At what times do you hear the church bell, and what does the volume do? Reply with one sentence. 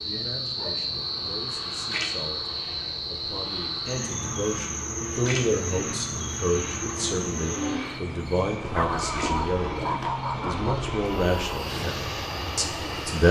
You can't hear the church bell here.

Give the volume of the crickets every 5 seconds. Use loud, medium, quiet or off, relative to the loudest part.
loud, loud, medium.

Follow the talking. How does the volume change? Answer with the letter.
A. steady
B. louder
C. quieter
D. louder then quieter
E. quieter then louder
B.